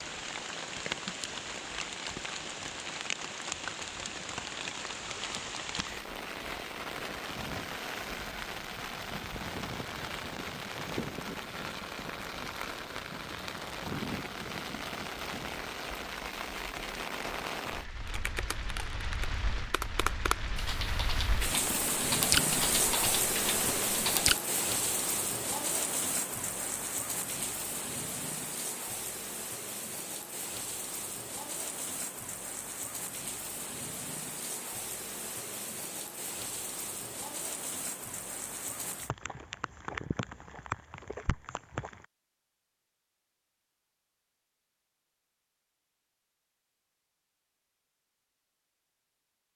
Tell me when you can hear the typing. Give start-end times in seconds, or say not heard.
18.1-24.4.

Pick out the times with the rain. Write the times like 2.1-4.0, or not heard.
0.0-42.0.